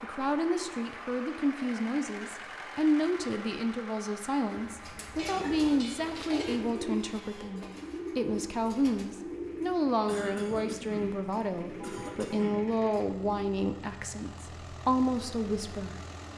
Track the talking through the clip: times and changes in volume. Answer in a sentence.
You can hear the talking from 0.0 to 15.9 s, at a steady volume.